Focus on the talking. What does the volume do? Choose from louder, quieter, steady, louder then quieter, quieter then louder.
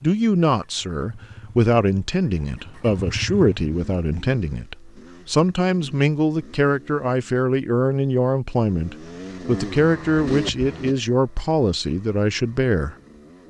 steady.